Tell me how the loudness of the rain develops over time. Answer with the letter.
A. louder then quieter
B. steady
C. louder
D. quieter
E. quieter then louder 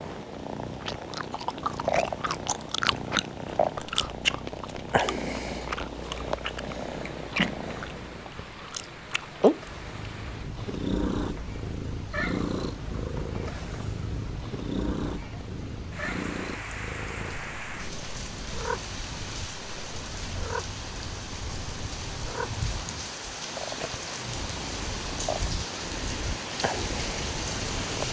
C.